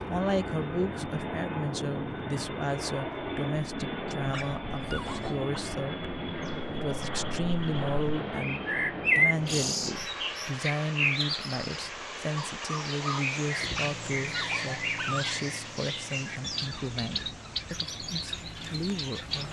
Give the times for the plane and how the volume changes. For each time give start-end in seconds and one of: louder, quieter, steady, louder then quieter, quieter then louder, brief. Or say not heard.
0.0-19.4 quieter.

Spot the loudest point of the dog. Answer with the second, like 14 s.
15 s.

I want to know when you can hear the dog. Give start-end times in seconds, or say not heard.
4.0-5.5, 13.6-15.3.